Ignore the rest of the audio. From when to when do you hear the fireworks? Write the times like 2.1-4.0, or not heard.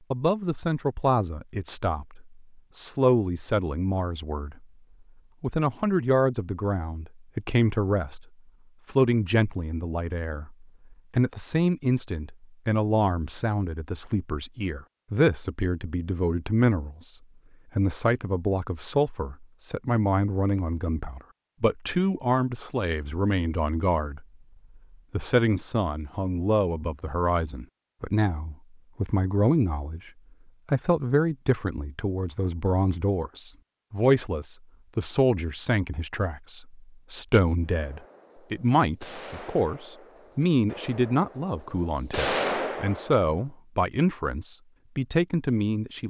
37.7-43.3.